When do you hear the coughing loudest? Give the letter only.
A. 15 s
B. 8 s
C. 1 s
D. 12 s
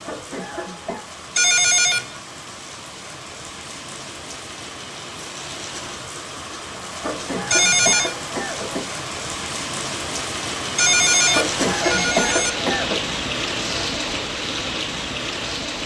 D.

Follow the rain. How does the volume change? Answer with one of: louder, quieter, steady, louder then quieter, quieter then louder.
louder.